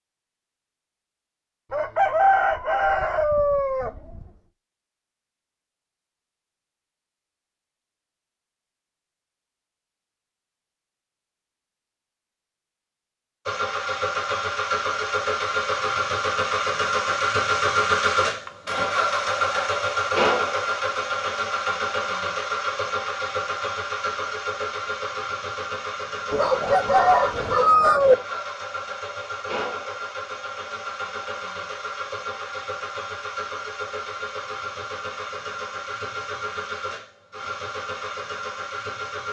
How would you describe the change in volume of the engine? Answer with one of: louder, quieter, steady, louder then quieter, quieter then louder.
quieter.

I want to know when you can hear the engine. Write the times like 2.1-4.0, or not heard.
13.4-39.2.